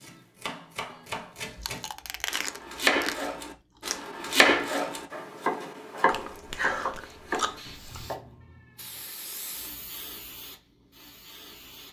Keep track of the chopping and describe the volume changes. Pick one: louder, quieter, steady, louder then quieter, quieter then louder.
louder then quieter.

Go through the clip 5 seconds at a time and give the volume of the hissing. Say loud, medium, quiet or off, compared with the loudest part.
off, loud, loud.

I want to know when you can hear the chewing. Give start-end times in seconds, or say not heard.
1.5-4.0, 6.0-8.1.